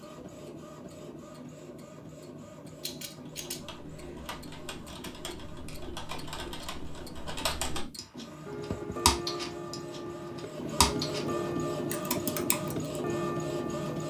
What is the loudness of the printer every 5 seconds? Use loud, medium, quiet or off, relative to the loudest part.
medium, medium, loud.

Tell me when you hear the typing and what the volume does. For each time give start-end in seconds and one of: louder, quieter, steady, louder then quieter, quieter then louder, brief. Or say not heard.
3.2-11.2 louder
11.9-12.8 brief.